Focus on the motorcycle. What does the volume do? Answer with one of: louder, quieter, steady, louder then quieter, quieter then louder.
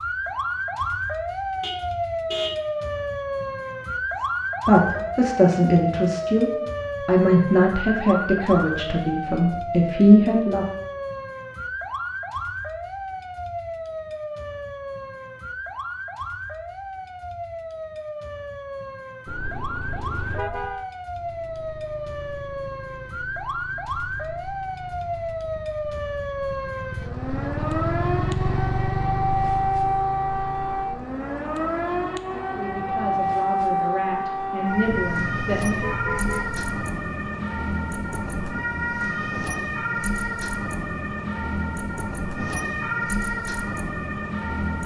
louder then quieter.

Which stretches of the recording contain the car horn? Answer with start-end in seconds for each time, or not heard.
1.6-2.6, 19.2-20.9, 34.9-36.9.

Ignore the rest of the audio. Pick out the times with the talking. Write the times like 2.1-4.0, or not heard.
4.2-10.7, 32.5-35.9.